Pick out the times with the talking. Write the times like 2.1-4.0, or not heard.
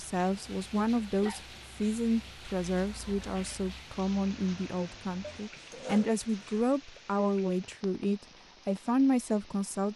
0.0-9.9.